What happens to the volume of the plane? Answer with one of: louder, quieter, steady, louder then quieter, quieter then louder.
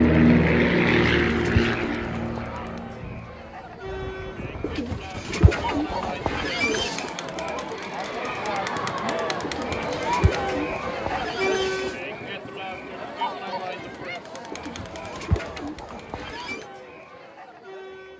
quieter.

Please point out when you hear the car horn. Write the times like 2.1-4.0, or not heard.
not heard.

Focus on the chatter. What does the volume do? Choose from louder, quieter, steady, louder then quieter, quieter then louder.
louder then quieter.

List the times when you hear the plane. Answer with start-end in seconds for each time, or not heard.
0.0-4.8.